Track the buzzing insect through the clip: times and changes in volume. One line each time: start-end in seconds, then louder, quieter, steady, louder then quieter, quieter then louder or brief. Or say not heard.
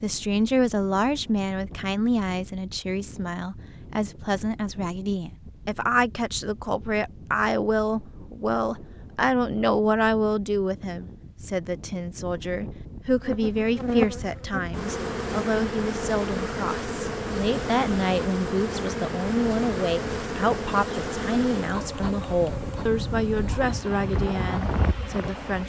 13.2-25.6 quieter.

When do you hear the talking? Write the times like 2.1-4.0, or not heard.
0.0-25.6.